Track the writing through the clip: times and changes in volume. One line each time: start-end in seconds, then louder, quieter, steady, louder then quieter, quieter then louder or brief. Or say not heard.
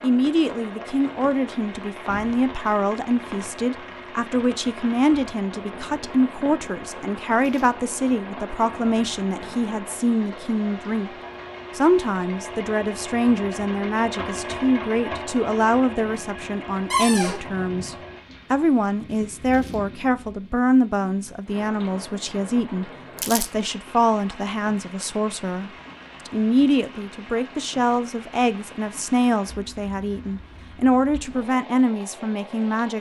not heard.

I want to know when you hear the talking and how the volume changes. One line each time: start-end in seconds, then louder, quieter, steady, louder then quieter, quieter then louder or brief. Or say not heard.
0.0-11.1 steady
11.8-32.9 steady.